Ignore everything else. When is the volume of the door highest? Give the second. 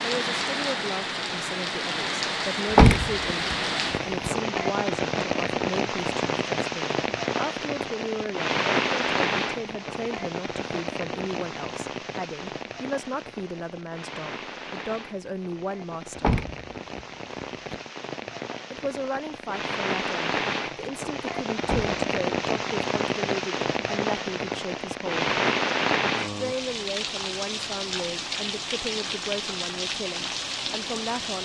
3 s.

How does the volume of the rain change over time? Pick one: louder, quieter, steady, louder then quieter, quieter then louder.
quieter then louder.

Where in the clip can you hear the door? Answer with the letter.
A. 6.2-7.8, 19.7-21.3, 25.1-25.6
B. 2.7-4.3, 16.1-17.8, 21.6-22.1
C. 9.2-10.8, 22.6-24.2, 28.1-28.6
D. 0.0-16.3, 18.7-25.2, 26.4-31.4
B.